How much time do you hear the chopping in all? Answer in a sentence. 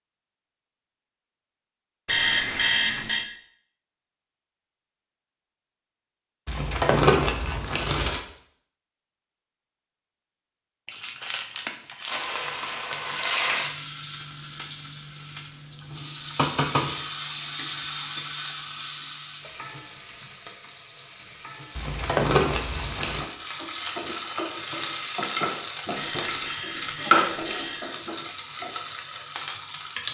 You can't hear the chopping here.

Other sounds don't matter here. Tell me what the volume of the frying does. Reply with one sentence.
The loudness of the frying goes down, then up.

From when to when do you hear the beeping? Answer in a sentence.
You can hear the beeping from 2.0 to 3.2 s and from 25.9 to 27.9 s.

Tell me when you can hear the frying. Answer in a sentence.
You can hear the frying from 12.1 to 30.0 s.